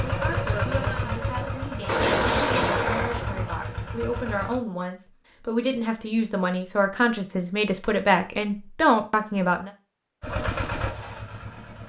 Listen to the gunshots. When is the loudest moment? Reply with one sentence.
The loudest moment of the gunshots is at 2 seconds.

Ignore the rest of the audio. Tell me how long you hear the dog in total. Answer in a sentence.
The dog can't be heard in this clip.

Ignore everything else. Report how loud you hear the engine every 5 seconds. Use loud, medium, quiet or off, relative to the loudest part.
loud, off, loud.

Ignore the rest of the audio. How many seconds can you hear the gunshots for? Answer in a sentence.
You can hear the gunshots for 2 seconds altogether.